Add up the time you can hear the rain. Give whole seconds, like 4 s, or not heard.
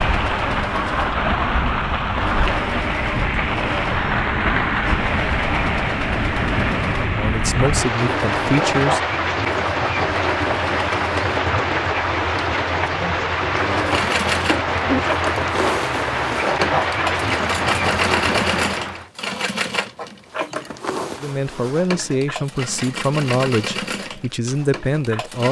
19 s.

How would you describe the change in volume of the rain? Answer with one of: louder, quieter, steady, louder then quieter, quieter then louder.
steady.